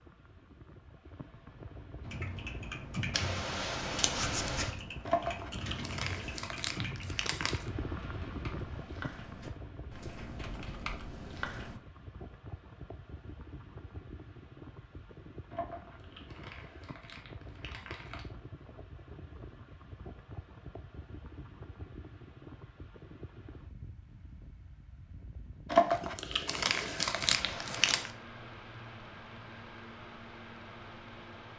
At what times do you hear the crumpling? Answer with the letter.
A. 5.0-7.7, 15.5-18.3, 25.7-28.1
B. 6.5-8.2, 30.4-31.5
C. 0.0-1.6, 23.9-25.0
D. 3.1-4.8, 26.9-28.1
A.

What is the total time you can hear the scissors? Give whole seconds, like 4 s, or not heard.
3 s.